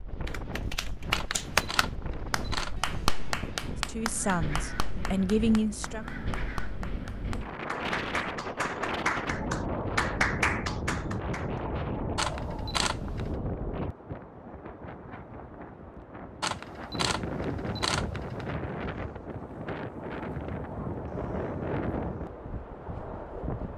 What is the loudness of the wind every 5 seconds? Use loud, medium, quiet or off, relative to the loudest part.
medium, loud, loud, loud, loud.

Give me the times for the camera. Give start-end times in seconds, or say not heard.
1.1-2.8, 12.2-13.3, 16.4-18.4.